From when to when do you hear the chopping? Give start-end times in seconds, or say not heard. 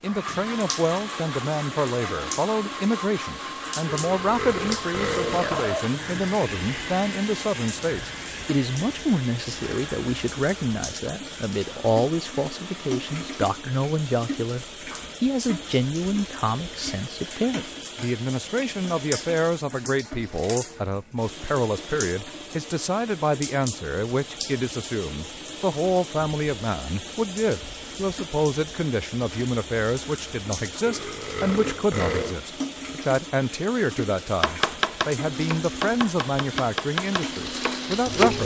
34.4-38.4.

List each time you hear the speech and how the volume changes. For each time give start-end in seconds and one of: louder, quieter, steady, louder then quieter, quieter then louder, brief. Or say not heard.
0.0-38.4 steady.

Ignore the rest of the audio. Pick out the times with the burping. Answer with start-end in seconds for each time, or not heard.
3.9-5.9, 30.9-32.4.